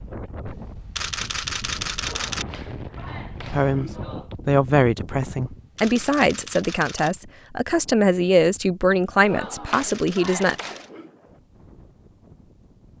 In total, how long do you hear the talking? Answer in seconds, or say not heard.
7 s.